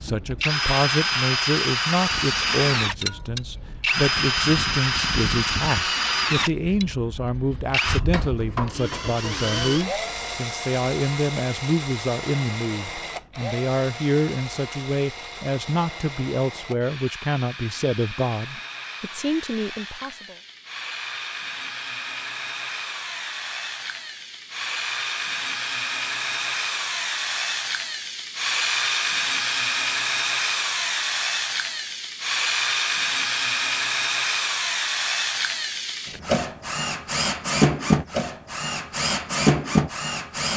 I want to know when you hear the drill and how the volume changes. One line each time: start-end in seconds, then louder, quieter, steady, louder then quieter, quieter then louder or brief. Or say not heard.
0.0-40.5 quieter then louder.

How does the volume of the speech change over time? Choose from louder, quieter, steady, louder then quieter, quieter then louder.
steady.